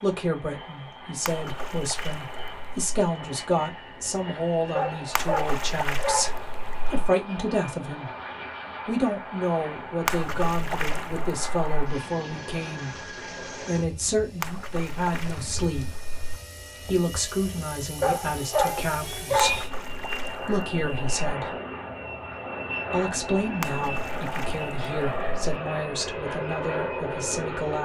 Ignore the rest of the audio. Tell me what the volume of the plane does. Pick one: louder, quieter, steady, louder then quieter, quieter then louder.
louder.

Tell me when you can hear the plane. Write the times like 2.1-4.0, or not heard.
0.0-27.8.